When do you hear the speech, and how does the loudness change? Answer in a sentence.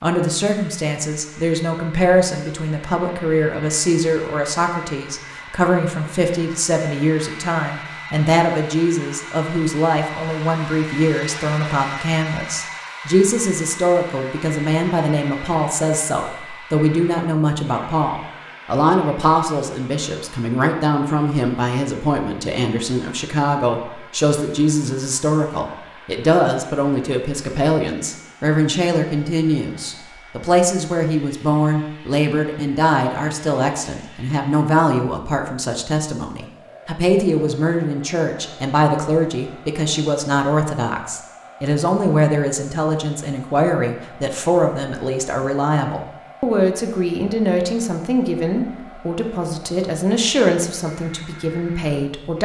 You can hear the speech from 0.0 to 52.4 s, at a steady volume.